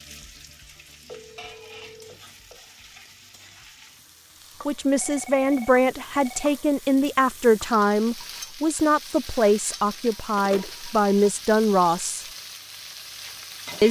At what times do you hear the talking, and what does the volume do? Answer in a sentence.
You can hear the talking from 4.7 to 12.2 s, at a steady volume.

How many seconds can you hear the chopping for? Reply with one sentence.
The chopping can't be heard in this clip.